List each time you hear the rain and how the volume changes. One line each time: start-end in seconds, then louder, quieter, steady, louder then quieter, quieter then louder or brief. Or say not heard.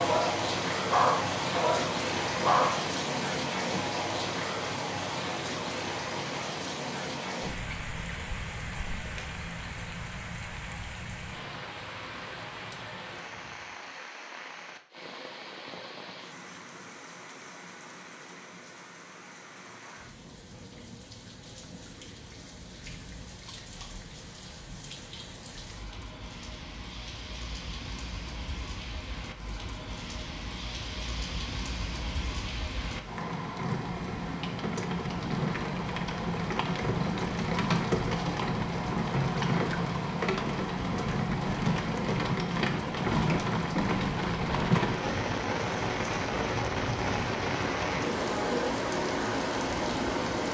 0.0-50.4 quieter then louder.